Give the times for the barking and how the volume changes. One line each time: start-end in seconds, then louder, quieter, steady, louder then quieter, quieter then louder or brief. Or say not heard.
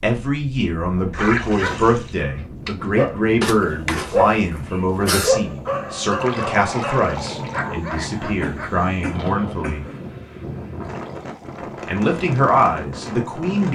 1.0-8.8 louder then quieter.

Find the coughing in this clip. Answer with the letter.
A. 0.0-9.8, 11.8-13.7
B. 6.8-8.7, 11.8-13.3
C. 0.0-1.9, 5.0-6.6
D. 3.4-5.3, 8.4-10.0
D.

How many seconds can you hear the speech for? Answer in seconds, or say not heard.
12 s.